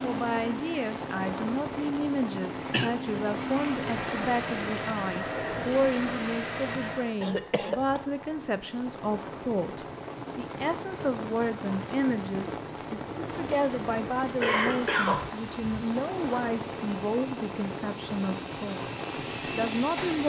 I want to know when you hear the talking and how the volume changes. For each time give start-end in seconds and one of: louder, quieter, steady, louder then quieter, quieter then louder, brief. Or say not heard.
0.0-18.9 steady
19.4-20.2 brief.